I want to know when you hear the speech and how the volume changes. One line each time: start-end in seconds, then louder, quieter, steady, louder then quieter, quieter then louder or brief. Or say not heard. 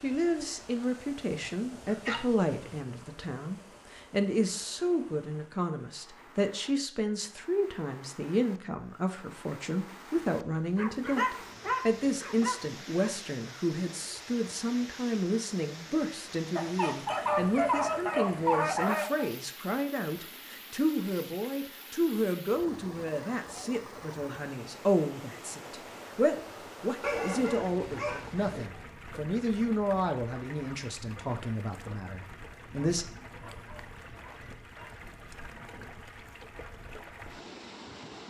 0.0-33.0 steady.